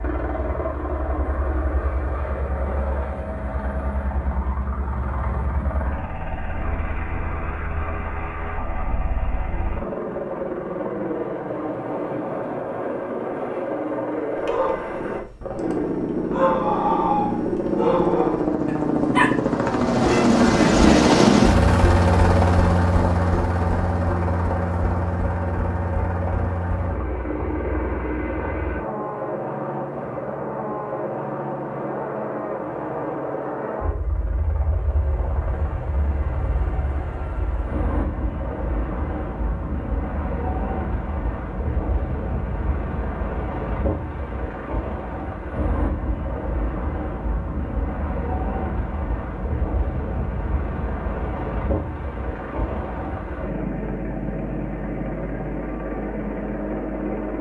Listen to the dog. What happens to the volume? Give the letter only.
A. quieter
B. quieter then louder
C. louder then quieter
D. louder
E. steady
C.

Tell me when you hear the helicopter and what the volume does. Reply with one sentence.
You can hear the helicopter from 0.0 to 57.3 s, getting louder then quieter.